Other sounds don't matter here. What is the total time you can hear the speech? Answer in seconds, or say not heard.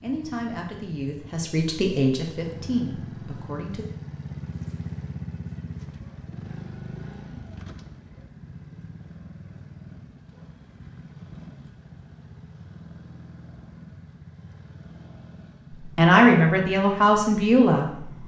6 s.